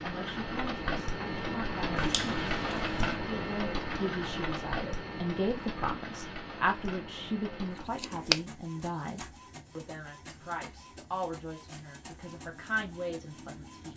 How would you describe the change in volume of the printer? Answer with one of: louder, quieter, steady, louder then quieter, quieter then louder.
quieter.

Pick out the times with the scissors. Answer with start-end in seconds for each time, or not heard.
1.9-3.1, 8.0-8.4.